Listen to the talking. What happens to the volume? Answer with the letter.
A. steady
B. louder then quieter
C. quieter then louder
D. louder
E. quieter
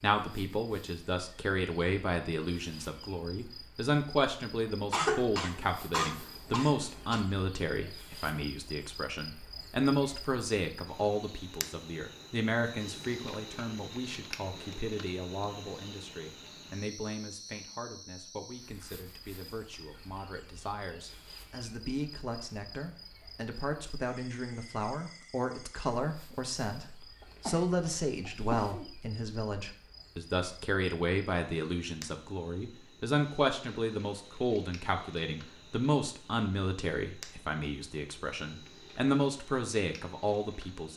C.